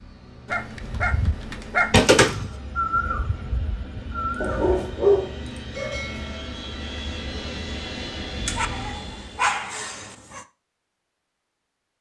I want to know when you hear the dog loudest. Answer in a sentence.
The loudest moment of the dog is at 5 seconds.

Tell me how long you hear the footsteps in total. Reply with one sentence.
The footsteps can't be heard in this clip.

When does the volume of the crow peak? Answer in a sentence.
The loudest moment of the crow is at 3 seconds.